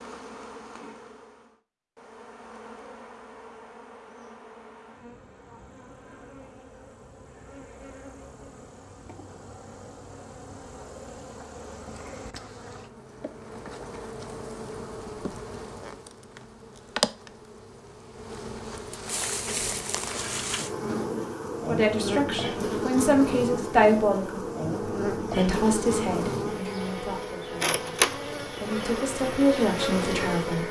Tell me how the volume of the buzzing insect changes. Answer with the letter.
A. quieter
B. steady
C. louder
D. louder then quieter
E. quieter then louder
C.